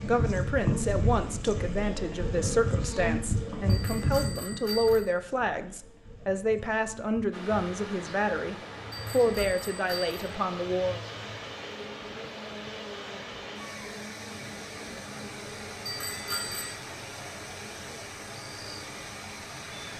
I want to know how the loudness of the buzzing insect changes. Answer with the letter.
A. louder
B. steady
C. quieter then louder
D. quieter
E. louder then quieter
D.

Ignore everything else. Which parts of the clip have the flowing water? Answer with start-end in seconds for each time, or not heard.
7.3-19.9.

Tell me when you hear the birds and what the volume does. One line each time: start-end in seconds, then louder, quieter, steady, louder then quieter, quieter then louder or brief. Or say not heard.
not heard.